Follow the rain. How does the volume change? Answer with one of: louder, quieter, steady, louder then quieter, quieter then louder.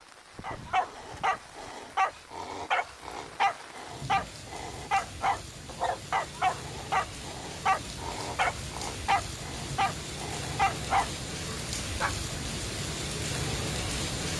louder.